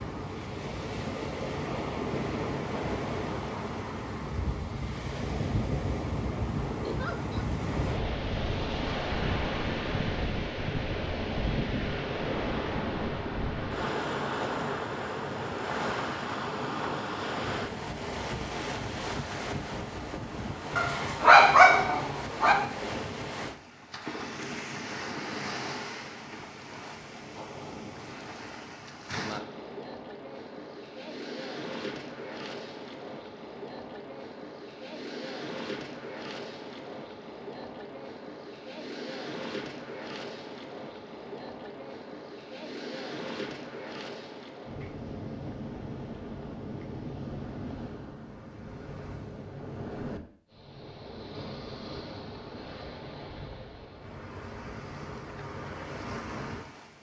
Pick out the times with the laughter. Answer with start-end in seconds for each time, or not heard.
6.8-7.5.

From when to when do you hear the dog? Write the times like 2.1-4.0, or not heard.
20.8-22.6.